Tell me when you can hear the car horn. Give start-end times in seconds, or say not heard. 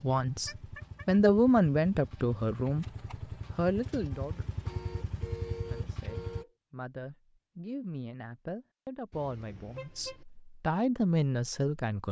0.5-1.2, 4.7-6.5, 9.1-10.2.